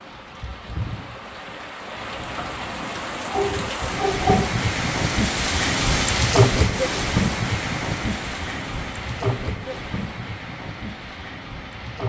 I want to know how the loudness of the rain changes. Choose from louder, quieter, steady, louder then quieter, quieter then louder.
louder then quieter.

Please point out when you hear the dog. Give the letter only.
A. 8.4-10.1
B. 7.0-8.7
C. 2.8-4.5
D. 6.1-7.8
C.